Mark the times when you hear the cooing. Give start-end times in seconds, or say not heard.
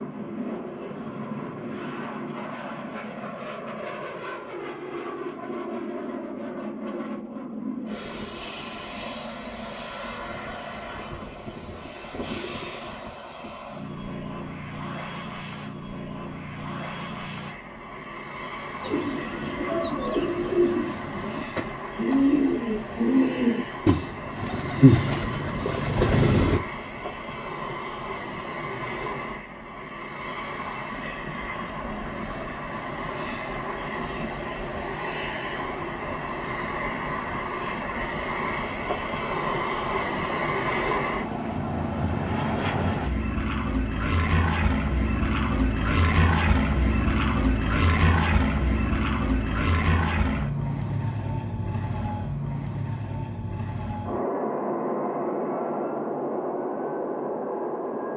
18.8-26.6.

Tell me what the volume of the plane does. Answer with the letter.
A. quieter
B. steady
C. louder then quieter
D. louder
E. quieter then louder
D.